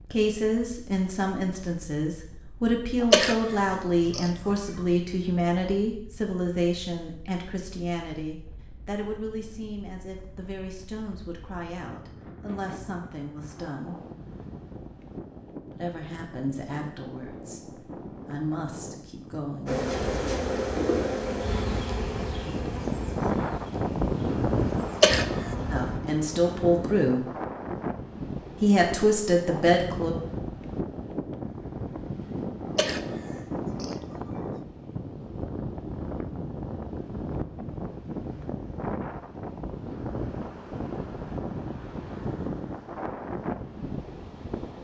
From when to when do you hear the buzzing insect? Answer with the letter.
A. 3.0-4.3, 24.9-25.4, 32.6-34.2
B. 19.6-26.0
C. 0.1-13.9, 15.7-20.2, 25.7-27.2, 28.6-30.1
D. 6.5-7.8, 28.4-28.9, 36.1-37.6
B.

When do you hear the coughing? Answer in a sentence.
You can hear the coughing from 3.0 to 4.3 s, from 24.9 to 25.4 s and from 32.6 to 34.2 s.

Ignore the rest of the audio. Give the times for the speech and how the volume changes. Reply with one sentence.
You can hear the speech from 0.1 to 13.9 s, getting quieter; from 15.7 to 20.2 s, getting quieter then louder; briefly from 25.7 to 27.2 s; and briefly from 28.6 to 30.1 s.